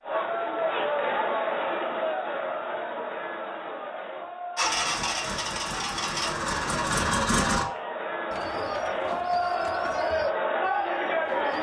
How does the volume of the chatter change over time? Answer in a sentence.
The volume of the chatter goes down, then up.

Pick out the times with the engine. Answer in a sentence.
The engine can be heard from 4.5 to 7.7 s.